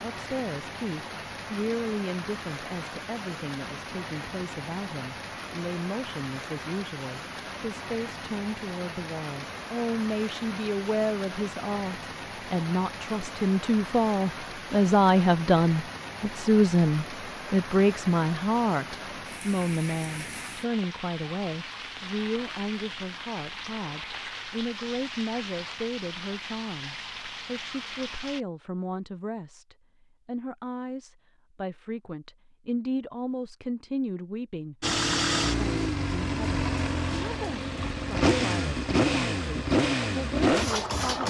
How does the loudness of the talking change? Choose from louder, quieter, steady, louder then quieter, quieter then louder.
louder then quieter.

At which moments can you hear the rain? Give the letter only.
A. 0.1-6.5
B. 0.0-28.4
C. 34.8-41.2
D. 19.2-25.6
B.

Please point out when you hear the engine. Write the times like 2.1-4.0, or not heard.
34.8-41.2.